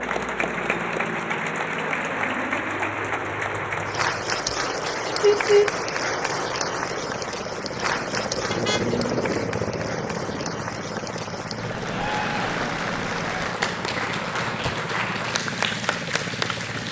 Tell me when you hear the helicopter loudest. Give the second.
9 s.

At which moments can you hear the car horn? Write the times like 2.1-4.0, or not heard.
5.2-5.7, 8.5-9.3.